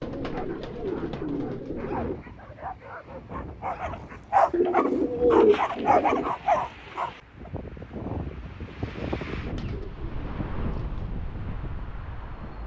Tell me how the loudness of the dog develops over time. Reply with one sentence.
The loudness of the dog goes up.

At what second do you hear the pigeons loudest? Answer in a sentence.
The loudest moment of the pigeons is at 5 seconds.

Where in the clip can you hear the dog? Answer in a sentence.
The dog can be heard from 0.3 to 7.1 s.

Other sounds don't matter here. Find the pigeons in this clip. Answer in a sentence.
The pigeons can be heard from 0.0 to 2.2 s, from 4.5 to 6.3 s and from 9.6 to 11.1 s.